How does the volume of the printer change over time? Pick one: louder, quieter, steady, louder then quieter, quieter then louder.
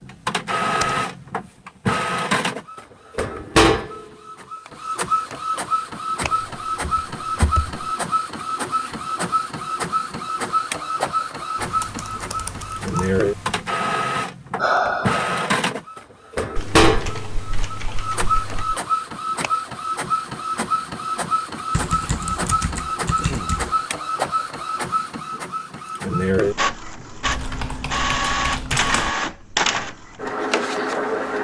steady.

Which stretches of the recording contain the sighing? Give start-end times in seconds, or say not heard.
14.6-15.5.